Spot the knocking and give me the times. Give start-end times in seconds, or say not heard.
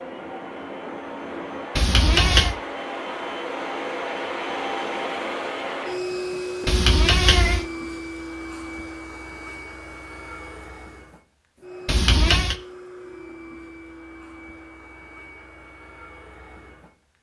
not heard.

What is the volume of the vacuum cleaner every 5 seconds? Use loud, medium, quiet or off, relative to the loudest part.
loud, loud, medium, quiet.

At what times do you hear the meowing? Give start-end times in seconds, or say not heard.
1.8-2.5, 6.7-7.7, 11.8-12.6.